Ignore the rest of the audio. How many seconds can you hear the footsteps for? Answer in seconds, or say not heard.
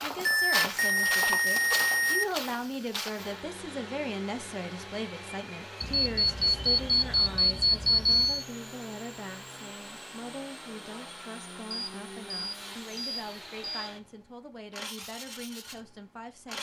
3 s.